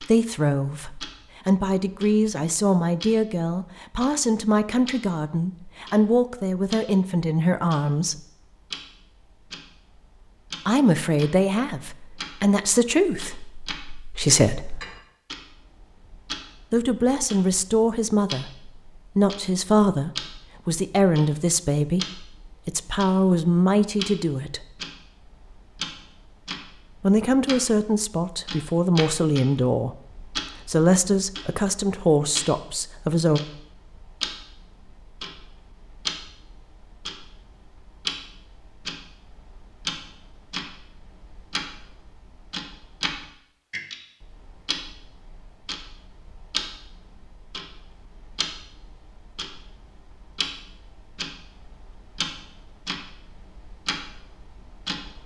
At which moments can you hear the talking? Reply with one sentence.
The talking can be heard from 0.0 to 8.2 s, from 10.7 to 14.8 s, from 16.7 to 24.6 s, from 27.0 to 30.1 s and from 30.6 to 33.4 s.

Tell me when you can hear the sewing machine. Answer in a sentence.
You can't hear the sewing machine here.